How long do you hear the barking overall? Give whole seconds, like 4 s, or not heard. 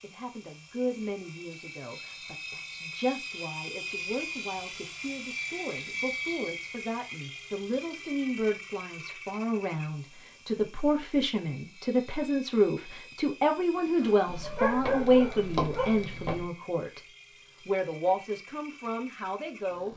2 s.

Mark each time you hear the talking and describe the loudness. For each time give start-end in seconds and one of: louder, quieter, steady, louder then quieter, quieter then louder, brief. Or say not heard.
0.0-17.0 louder
17.6-19.9 brief.